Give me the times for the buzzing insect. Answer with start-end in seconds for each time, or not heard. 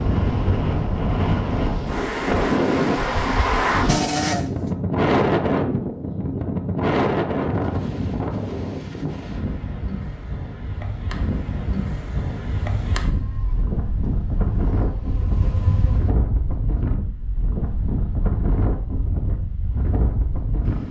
0.0-4.5, 13.0-16.1.